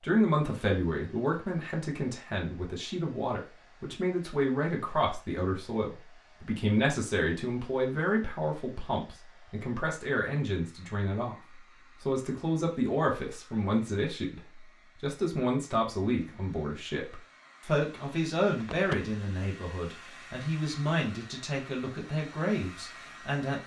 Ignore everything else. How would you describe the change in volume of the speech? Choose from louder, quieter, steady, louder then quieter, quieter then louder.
steady.